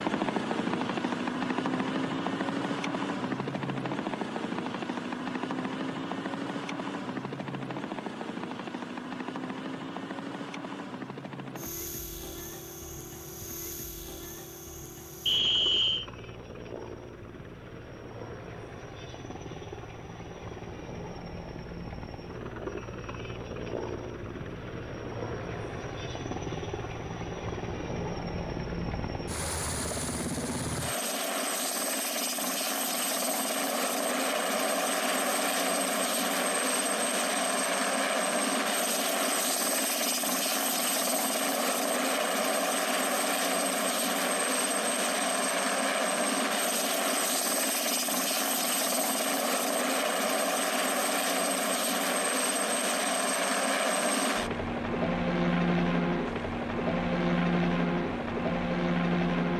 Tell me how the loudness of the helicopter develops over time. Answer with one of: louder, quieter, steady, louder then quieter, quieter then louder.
quieter then louder.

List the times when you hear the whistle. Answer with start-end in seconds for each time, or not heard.
15.2-16.1.